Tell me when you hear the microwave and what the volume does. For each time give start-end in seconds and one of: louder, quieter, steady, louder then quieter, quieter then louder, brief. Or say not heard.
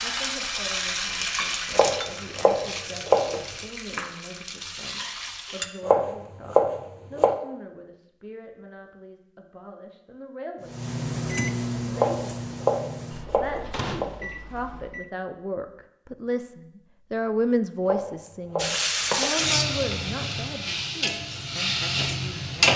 10.6-15.1 quieter.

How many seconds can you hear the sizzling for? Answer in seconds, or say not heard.
10 s.